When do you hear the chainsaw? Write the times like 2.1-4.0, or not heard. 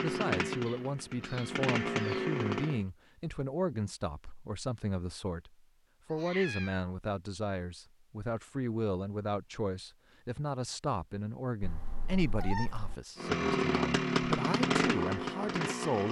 0.0-2.9, 13.2-16.0.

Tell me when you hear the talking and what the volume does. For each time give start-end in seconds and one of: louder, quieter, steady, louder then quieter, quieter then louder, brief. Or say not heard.
0.0-16.0 steady.